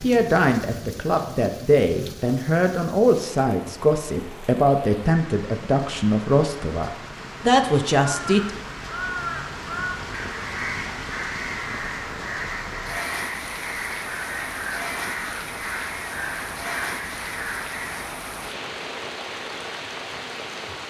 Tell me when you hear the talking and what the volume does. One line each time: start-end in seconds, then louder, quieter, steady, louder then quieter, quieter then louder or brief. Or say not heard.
0.0-8.5 steady.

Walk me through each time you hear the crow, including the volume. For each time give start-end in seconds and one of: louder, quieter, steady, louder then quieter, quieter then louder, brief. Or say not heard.
8.1-18.1 steady.